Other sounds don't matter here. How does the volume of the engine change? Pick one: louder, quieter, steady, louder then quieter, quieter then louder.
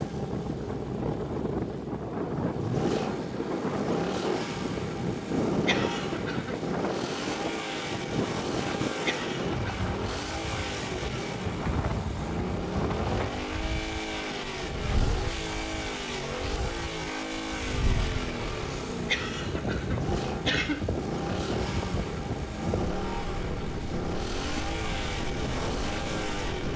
steady.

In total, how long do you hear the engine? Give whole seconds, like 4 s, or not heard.
27 s.